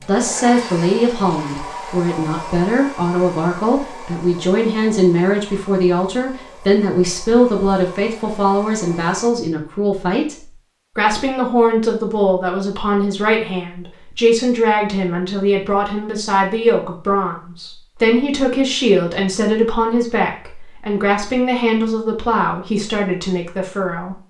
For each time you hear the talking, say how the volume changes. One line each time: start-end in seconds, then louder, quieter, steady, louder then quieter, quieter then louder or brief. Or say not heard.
0.1-10.3 steady
10.9-24.1 steady.